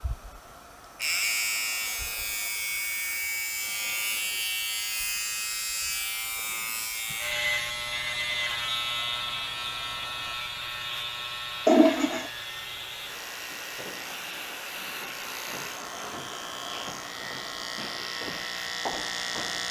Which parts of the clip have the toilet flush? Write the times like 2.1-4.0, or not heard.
11.7-12.3.